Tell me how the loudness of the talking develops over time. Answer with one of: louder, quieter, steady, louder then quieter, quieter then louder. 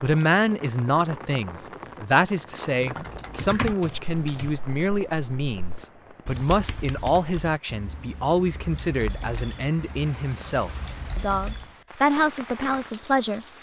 steady.